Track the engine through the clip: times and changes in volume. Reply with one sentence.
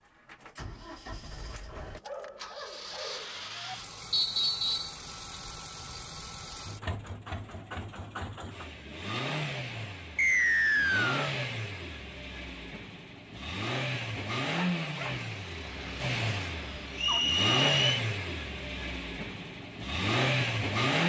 The engine can be heard from 0.0 to 21.0 s, getting louder.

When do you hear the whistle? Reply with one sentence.
The whistle can be heard from 4.1 to 5.0 s, from 10.2 to 11.3 s and from 16.9 to 18.0 s.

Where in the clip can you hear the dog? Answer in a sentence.
The dog can be heard from 1.8 to 3.8 s and from 14.6 to 17.2 s.